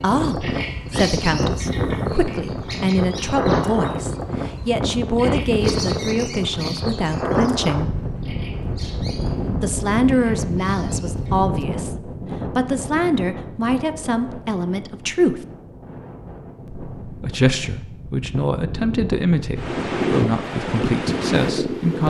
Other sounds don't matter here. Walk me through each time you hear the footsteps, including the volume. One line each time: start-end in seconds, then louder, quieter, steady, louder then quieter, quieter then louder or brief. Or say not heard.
not heard.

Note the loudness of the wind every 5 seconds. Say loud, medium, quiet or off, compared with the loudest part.
loud, loud, medium, medium, loud.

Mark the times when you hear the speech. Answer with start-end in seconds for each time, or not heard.
0.0-7.9, 9.6-15.4, 16.6-22.0.